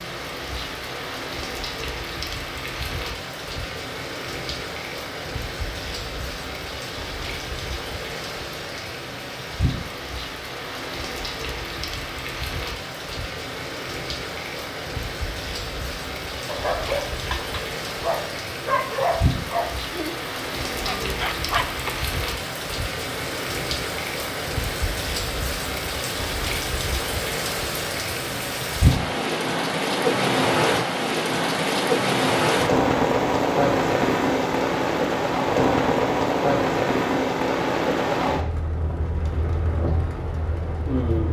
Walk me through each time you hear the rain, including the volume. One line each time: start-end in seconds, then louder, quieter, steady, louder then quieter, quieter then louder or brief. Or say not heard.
0.0-41.2 louder.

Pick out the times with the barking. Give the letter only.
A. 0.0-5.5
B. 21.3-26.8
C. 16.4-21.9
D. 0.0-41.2
C.